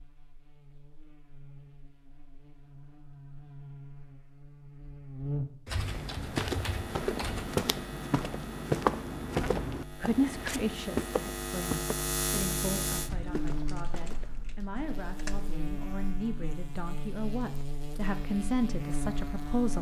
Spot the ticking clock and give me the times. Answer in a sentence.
The ticking clock can't be heard in this clip.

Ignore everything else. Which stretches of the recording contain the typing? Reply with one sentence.
You can hear the typing from 5.7 to 7.5 s and from 13.1 to 15.6 s.